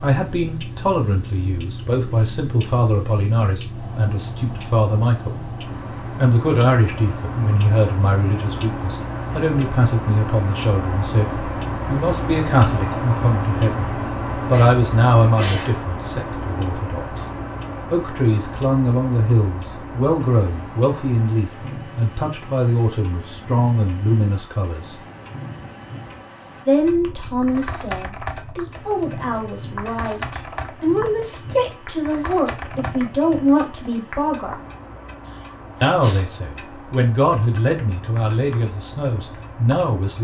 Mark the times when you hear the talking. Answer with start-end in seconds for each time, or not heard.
0.0-5.4, 6.2-17.2, 17.9-24.9, 26.6-34.5, 35.8-40.1.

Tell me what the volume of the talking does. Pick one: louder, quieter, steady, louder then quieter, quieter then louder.
steady.